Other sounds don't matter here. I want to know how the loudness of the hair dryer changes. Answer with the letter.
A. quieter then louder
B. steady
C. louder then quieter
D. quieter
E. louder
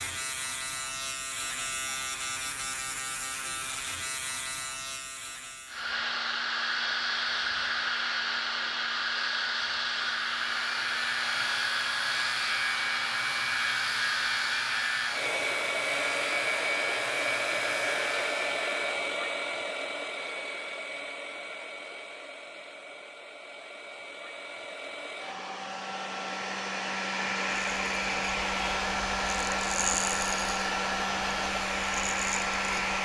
A.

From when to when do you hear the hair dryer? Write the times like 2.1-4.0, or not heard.
5.7-33.0.